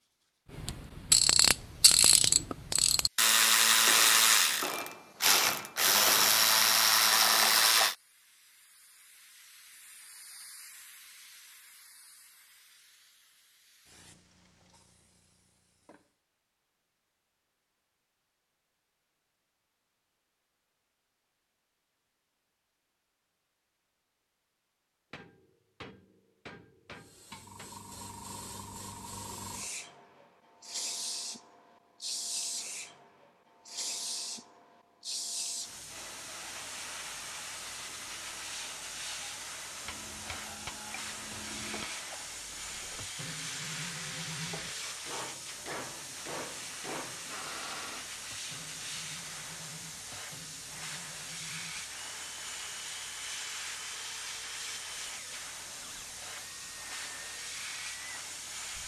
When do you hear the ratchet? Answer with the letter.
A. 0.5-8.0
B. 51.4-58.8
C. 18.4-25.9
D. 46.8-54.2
A.